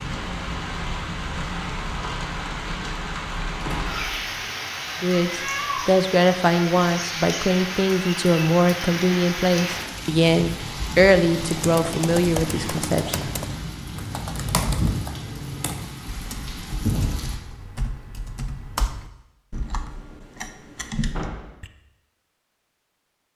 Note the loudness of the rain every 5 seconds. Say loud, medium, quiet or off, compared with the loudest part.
loud, loud, loud, loud, off.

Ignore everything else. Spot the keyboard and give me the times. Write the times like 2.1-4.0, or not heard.
11.3-21.7.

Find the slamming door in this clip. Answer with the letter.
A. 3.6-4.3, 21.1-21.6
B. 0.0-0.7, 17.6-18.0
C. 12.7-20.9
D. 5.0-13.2
A.